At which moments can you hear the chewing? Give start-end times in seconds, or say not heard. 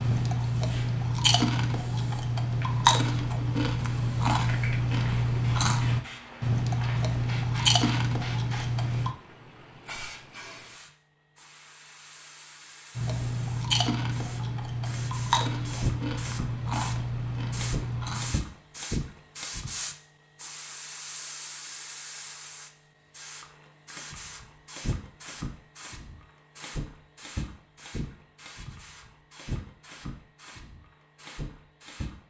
0.0-9.2, 12.9-18.4.